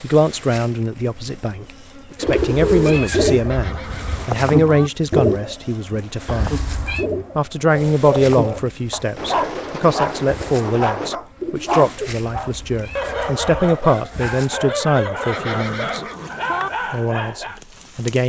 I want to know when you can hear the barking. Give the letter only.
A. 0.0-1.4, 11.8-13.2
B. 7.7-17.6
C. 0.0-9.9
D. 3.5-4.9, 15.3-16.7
B.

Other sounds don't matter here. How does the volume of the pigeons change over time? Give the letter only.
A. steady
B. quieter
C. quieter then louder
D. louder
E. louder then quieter
B.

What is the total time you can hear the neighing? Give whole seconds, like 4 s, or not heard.
3 s.